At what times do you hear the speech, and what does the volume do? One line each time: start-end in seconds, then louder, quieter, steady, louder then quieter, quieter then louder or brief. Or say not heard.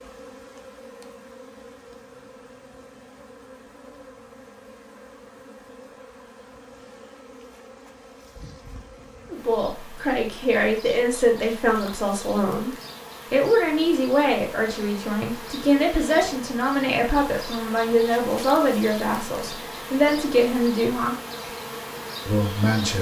9.3-21.1 steady
22.2-22.9 brief.